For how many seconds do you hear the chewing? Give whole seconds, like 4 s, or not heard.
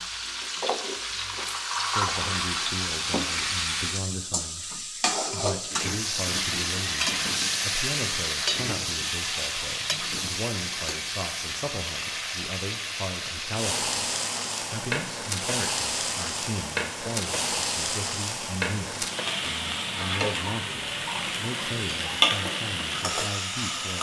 not heard.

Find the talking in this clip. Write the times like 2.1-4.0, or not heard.
1.9-23.9.